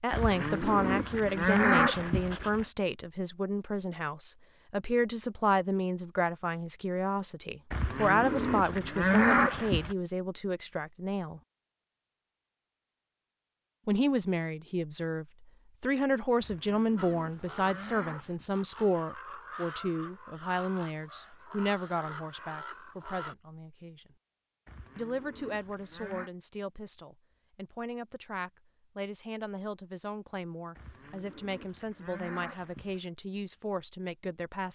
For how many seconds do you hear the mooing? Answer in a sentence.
The mooing can be heard for 11 seconds in total.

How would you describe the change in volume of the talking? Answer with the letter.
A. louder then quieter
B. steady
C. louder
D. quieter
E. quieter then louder
D.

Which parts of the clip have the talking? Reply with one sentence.
You can hear the talking from 0.0 to 11.4 s, from 13.8 to 24.1 s and from 24.9 to 34.7 s.